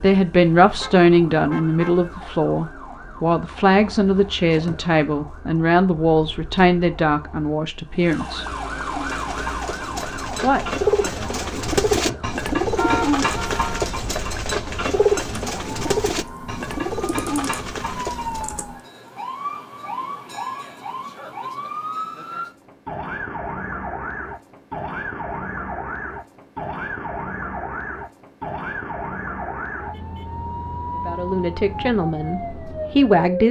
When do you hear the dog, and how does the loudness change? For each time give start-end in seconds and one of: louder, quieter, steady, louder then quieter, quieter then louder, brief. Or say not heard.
not heard.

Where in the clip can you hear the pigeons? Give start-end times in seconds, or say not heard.
8.7-18.6.